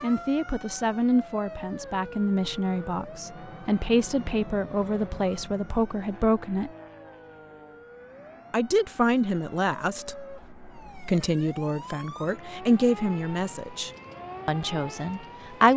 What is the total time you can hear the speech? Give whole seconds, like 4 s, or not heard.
14 s.